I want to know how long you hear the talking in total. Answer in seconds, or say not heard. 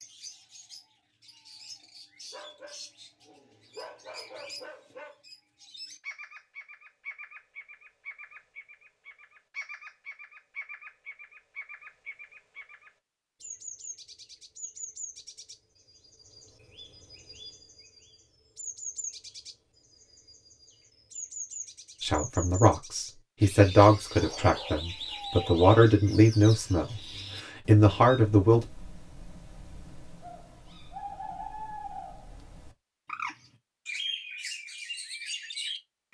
7 s.